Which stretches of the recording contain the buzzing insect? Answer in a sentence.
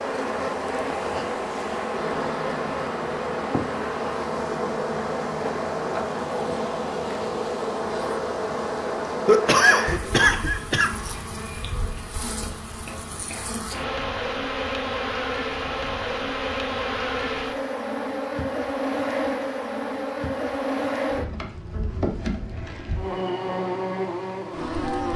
You can hear the buzzing insect from 0.0 to 25.1 s.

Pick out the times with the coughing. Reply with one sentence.
You can hear the coughing from 9.2 to 10.9 s.